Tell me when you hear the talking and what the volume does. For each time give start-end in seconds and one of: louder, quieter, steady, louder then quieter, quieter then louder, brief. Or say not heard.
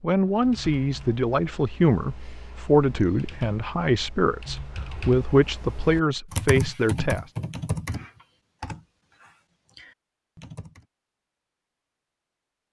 0.0-7.3 steady.